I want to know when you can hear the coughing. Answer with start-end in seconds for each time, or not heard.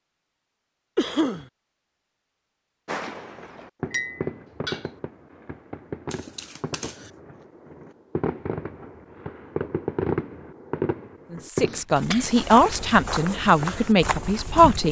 0.9-1.4, 6.1-7.1, 11.7-12.9.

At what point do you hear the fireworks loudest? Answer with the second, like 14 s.
10 s.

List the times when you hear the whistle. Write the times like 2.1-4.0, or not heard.
not heard.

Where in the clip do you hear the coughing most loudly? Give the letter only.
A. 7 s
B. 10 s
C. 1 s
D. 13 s
C.